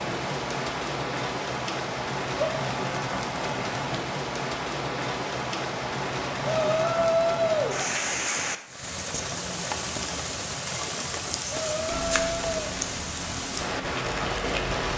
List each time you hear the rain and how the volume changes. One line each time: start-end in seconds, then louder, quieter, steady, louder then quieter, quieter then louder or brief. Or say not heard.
0.0-14.9 steady.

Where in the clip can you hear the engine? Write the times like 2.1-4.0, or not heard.
11.8-14.9.